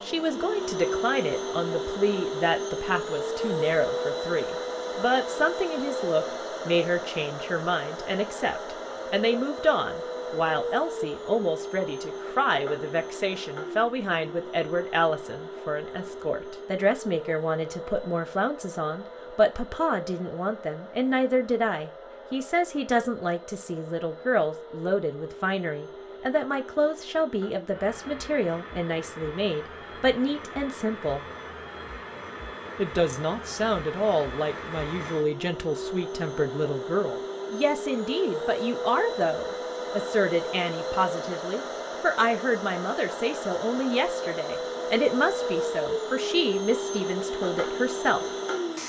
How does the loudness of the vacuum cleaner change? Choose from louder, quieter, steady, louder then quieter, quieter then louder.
quieter then louder.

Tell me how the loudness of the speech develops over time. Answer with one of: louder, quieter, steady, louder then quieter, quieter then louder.
steady.